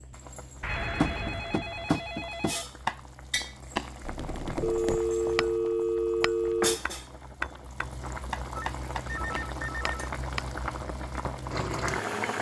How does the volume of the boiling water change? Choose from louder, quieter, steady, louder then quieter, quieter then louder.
louder.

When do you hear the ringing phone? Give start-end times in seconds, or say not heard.
0.6-2.6, 4.6-6.8, 8.6-9.9.